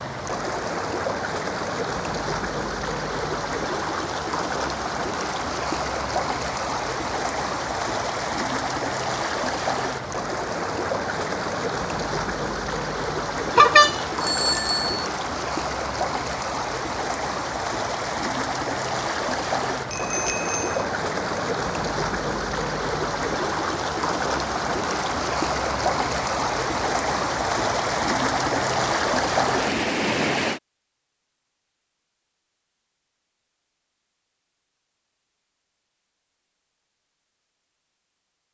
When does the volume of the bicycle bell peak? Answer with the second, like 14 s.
14 s.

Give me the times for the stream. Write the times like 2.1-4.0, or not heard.
0.0-30.6.